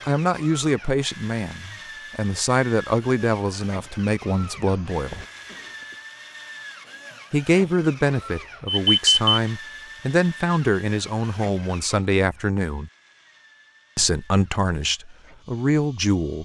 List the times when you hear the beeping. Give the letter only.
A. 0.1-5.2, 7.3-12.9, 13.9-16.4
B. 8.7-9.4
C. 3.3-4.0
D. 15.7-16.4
B.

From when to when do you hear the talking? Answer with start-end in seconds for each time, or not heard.
0.1-5.2, 7.3-12.9, 13.9-16.4.